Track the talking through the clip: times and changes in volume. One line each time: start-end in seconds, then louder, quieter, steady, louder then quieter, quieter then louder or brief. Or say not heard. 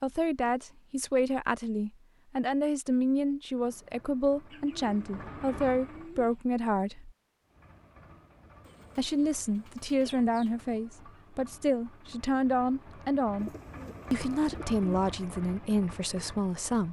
0.0-7.1 steady
8.9-13.5 quieter then louder
14.1-16.8 brief.